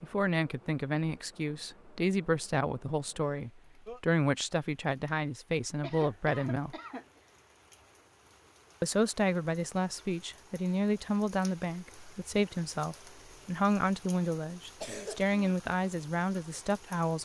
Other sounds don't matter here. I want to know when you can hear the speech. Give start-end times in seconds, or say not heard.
0.0-6.8, 8.8-17.2.